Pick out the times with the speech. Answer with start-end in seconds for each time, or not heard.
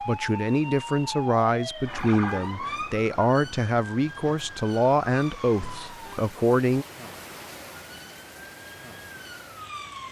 0.1-6.8.